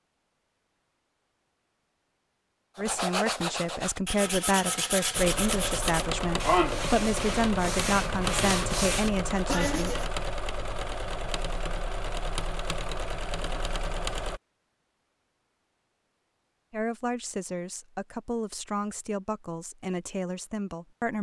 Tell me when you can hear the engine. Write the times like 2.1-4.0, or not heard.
5.1-14.4.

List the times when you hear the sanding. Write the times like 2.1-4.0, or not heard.
2.8-10.1.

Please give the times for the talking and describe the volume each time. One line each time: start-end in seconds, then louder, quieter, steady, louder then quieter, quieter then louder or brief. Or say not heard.
2.8-9.9 steady
16.7-21.1 steady.